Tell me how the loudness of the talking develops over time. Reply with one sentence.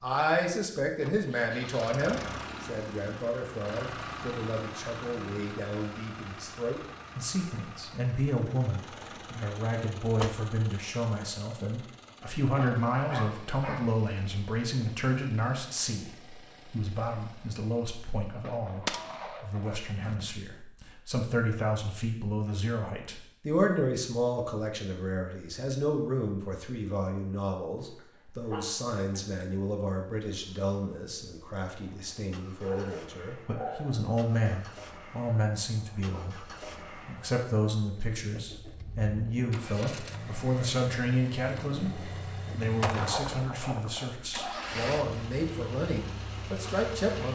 The volume of the talking stays about the same.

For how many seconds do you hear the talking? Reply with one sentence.
The talking can be heard for 47 seconds in total.